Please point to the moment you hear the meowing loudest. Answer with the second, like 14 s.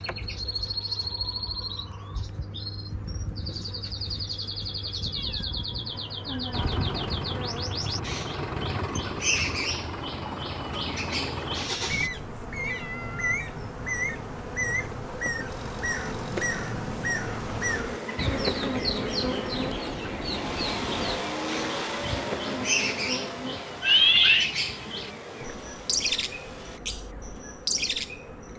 24 s.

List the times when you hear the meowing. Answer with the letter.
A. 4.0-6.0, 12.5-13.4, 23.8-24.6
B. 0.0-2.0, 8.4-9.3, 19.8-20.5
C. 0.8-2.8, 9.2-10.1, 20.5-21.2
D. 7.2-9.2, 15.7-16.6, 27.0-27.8
A.